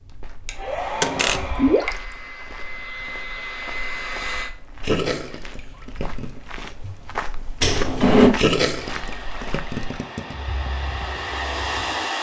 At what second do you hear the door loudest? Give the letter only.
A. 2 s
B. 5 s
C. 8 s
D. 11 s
C.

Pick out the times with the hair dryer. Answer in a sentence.
You can hear the hair dryer from 0.0 to 4.5 s and from 8.7 to 12.1 s.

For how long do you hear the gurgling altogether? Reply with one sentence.
You can hear the gurgling for 4 seconds altogether.